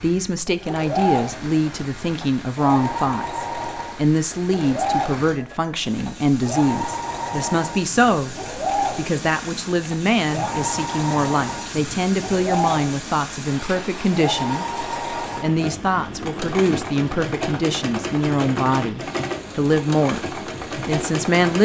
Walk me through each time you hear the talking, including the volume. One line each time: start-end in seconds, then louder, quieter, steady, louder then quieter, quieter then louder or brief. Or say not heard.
0.0-8.3 steady
8.9-21.5 steady.